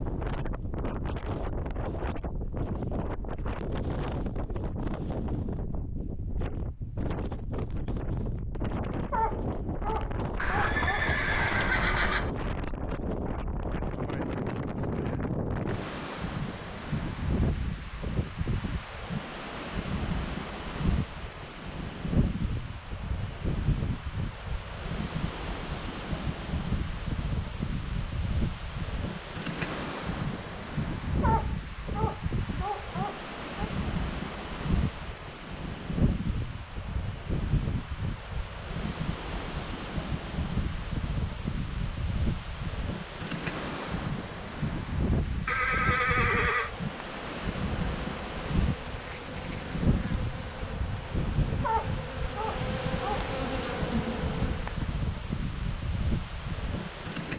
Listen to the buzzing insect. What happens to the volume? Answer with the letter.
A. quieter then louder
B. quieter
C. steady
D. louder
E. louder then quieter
D.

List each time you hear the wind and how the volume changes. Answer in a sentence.
The wind can be heard from 0.0 to 57.3 s, at a steady volume.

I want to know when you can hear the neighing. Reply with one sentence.
The neighing can be heard from 10.3 to 12.3 s and from 45.5 to 46.7 s.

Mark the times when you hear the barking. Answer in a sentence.
The barking can be heard from 9.1 to 11.1 s, from 31.2 to 33.7 s and from 51.6 to 53.3 s.